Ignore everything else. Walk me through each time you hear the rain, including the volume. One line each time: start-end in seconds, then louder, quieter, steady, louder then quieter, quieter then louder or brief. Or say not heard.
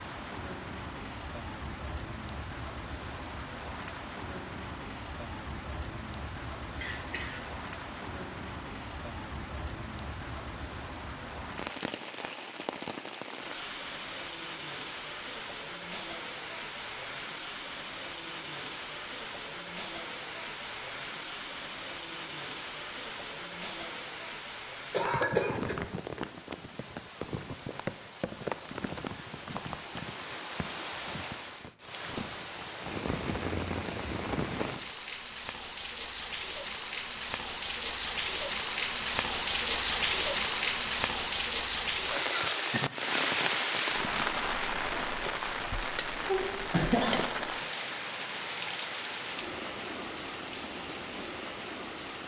0.0-52.2 louder.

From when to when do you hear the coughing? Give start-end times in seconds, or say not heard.
6.8-7.4, 24.9-25.8, 46.2-47.2.